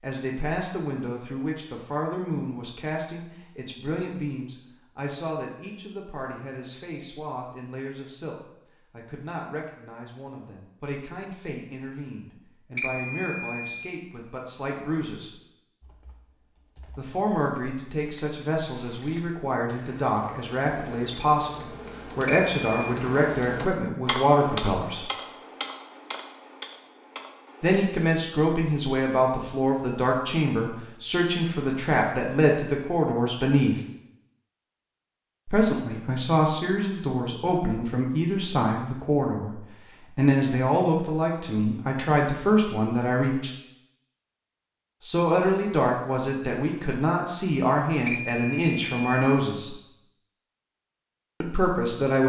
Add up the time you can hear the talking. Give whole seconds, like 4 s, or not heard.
43 s.